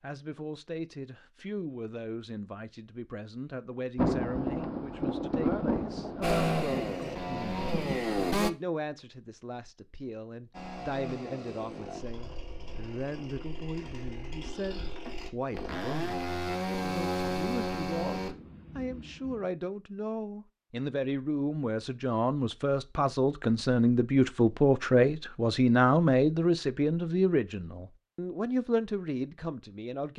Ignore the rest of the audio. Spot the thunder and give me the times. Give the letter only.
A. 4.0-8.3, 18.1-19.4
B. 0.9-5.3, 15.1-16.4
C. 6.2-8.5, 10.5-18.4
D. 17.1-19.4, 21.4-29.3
A.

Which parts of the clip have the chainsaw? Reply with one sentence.
You can hear the chainsaw from 6.2 to 8.5 s and from 10.5 to 18.4 s.